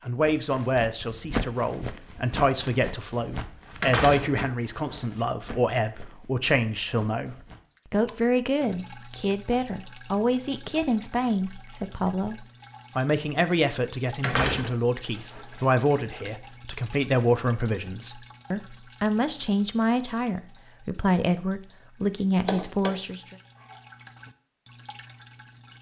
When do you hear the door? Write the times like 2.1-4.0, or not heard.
3.8-5.2, 14.2-15.7, 22.4-22.9.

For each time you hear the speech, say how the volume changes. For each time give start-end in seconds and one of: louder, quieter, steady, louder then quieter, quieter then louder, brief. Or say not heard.
0.1-23.4 steady.